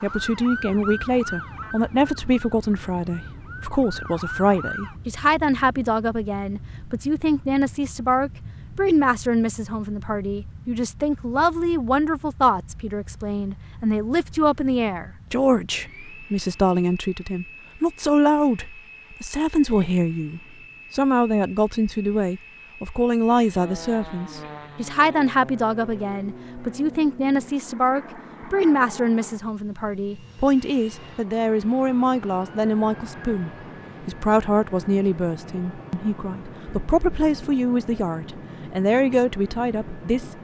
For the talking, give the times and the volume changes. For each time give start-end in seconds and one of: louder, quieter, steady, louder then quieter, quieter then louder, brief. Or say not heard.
0.0-40.3 steady.